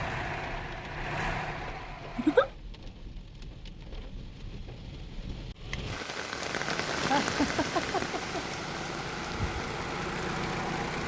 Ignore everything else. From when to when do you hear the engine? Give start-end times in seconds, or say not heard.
0.0-2.5, 6.2-11.0.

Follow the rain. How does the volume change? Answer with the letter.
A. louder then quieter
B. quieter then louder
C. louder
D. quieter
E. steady
A.